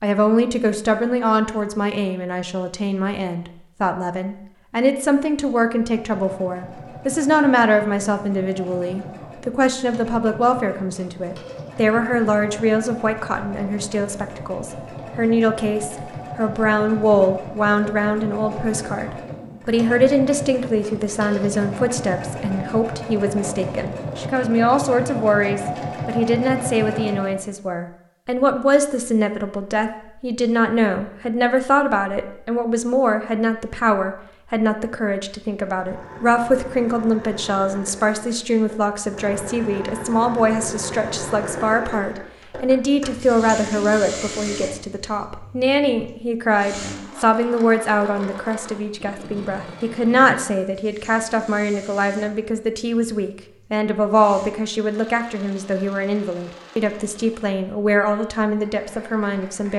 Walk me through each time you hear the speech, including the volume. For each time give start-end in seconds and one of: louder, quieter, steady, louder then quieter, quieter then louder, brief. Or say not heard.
0.0-59.7 steady.